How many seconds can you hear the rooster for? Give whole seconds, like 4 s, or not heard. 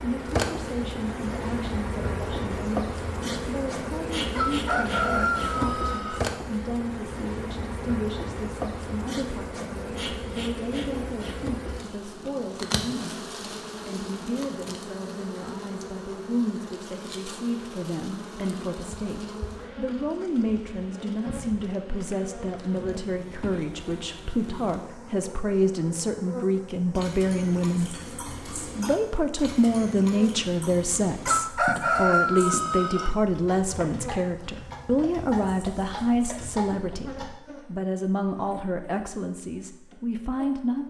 4 s.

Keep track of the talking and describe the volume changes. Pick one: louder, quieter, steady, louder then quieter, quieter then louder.
louder.